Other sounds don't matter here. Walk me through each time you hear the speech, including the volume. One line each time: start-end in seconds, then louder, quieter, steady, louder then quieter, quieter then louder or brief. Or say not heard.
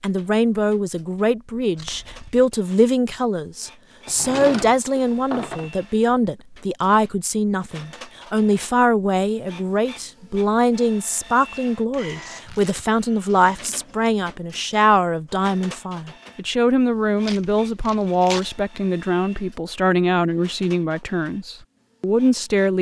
0.0-22.7 steady.